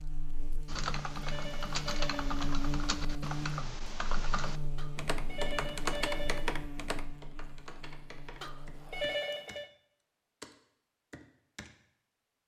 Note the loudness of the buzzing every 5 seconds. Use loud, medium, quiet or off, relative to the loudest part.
loud, medium, off.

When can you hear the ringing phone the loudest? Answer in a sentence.
The volume of the ringing phone peaks at 9 seconds.